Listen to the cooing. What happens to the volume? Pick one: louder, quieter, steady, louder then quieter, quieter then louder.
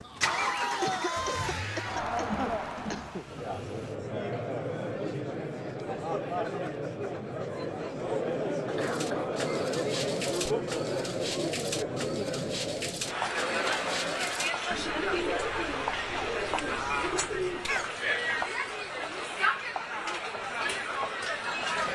steady.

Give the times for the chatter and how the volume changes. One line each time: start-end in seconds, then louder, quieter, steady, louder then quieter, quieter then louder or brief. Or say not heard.
0.0-21.9 steady.